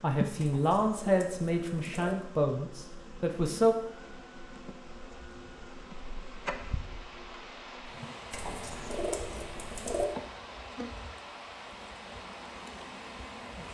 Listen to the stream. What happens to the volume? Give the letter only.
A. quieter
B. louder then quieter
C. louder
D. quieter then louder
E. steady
C.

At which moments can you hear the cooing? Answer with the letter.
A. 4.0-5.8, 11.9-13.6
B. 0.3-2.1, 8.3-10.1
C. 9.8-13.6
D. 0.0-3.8
B.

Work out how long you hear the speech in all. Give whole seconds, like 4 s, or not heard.
4 s.